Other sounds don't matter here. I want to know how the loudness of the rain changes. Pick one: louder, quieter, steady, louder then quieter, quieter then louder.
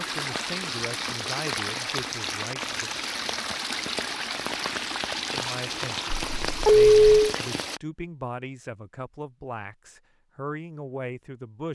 steady.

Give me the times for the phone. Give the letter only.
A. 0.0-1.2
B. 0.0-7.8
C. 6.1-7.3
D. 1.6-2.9
C.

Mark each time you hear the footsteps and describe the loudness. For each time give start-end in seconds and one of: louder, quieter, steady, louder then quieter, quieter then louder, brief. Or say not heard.
not heard.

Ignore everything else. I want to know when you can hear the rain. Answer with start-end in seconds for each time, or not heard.
0.0-7.8.